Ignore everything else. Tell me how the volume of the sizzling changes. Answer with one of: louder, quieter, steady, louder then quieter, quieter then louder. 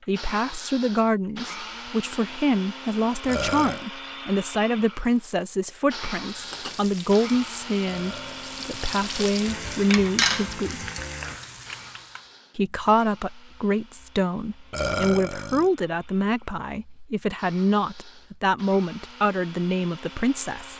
louder then quieter.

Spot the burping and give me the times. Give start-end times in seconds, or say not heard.
3.2-3.9, 7.8-9.4, 14.7-15.7.